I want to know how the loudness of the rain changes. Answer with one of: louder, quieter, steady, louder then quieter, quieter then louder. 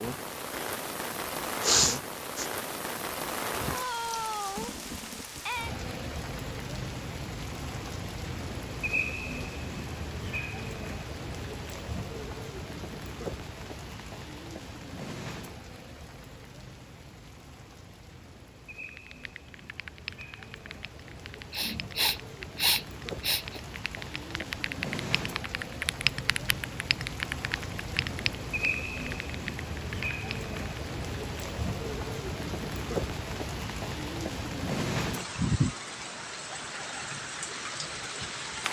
quieter then louder.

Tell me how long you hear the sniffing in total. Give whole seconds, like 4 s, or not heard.
3 s.